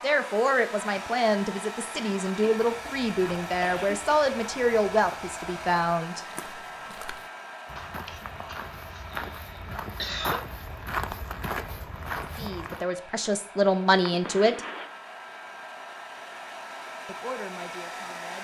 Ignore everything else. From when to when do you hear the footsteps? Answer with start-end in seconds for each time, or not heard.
2.5-12.8.